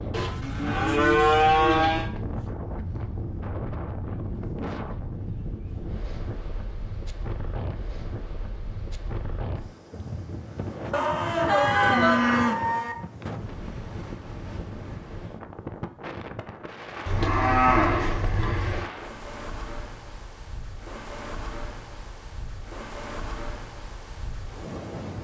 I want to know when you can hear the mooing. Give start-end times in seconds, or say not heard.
0.1-2.1, 10.9-12.9, 17.1-18.9.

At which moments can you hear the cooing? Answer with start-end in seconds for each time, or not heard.
not heard.